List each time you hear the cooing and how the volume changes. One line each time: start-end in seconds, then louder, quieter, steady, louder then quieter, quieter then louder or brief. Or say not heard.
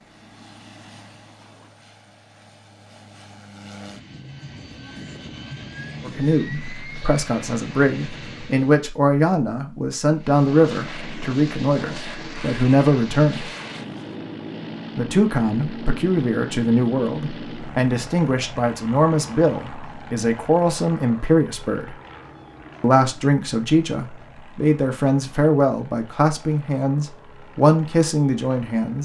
not heard.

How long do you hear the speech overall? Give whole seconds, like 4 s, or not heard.
21 s.